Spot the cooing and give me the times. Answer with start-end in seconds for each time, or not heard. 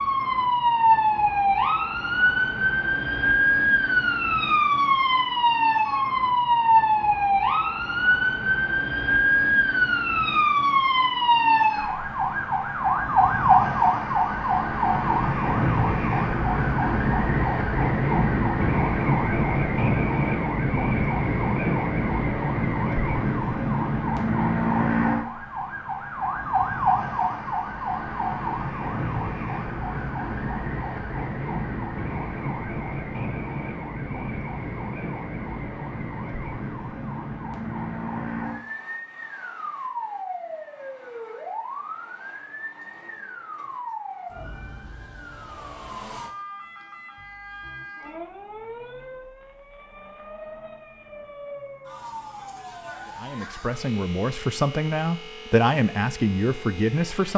not heard.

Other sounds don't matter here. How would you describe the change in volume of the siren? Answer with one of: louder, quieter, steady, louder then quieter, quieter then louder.
quieter.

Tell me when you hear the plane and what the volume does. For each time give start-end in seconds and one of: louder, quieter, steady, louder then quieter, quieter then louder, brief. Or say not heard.
not heard.